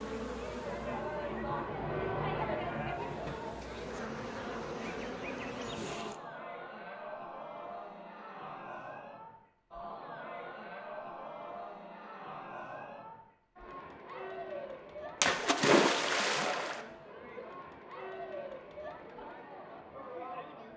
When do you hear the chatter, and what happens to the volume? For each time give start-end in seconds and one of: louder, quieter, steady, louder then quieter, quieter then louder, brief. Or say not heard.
0.0-20.7 quieter.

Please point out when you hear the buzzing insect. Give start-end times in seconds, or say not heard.
0.0-6.2.